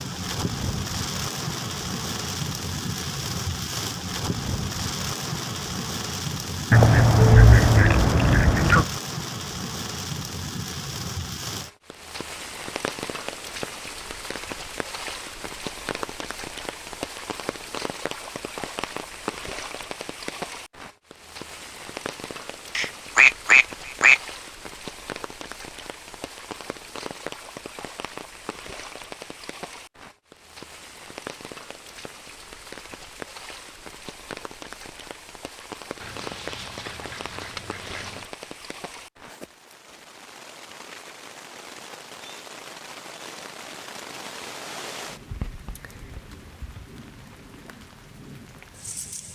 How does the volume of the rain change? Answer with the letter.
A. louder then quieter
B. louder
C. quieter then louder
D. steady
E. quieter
E.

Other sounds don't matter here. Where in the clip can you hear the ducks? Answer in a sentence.
You can hear the ducks from 6.7 to 8.8 s, from 22.8 to 24.2 s and from 36.0 to 38.2 s.